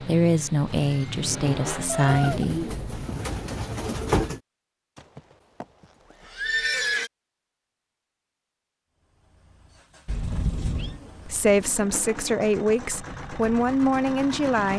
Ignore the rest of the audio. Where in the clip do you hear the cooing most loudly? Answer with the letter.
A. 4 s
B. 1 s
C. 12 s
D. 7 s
A.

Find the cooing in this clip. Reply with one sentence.
The cooing can be heard from 2.0 to 4.4 s and from 10.6 to 12.3 s.